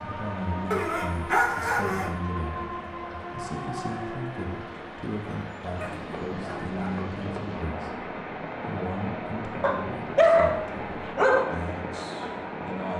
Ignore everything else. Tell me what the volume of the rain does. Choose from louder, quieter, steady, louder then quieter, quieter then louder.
steady.